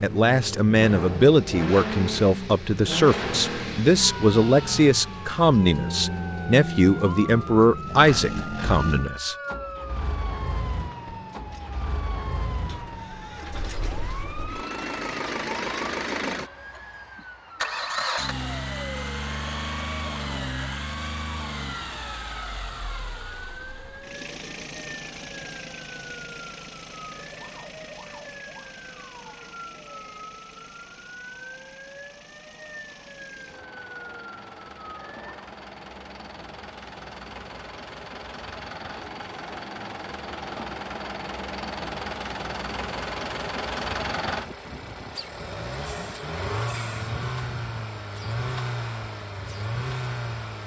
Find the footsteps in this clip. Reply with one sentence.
You can't hear the footsteps here.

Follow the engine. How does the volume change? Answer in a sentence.
The volume of the engine goes down, then up.